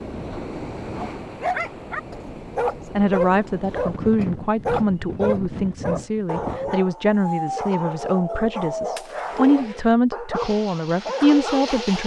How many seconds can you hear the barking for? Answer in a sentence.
You can hear the barking for 11 seconds altogether.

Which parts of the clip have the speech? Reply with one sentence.
The speech can be heard from 3.0 to 12.0 s.